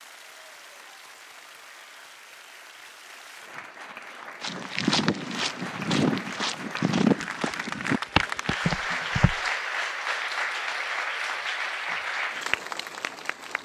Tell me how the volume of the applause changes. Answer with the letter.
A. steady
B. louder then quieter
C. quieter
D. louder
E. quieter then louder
D.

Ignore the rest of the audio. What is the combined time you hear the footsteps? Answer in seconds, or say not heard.
5 s.